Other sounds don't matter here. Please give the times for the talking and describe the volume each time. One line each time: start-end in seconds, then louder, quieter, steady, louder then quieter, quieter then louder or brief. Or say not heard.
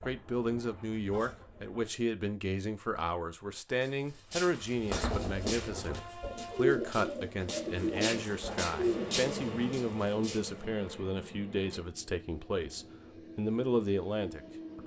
0.1-14.8 steady.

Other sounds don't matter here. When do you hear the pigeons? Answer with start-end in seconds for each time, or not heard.
0.0-1.9, 4.8-9.2.